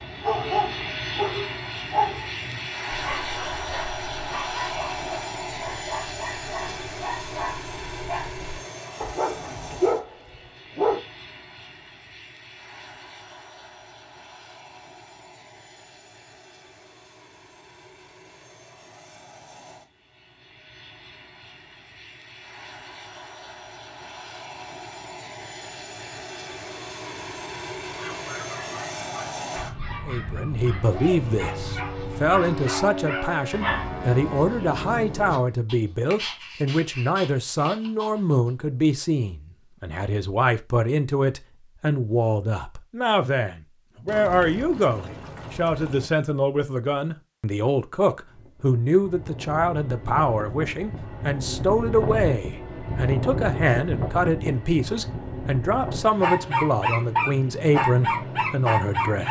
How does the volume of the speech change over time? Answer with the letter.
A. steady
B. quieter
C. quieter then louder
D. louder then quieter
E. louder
A.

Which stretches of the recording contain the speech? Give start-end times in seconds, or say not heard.
30.1-59.2.